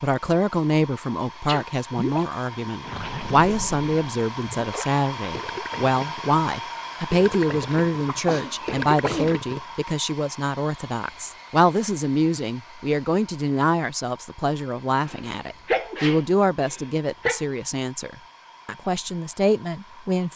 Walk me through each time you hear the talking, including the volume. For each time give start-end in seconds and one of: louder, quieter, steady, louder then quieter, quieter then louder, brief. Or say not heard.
0.0-20.3 steady.